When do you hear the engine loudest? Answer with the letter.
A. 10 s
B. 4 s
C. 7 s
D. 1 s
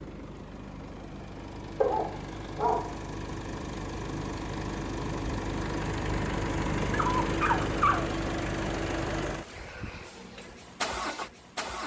C.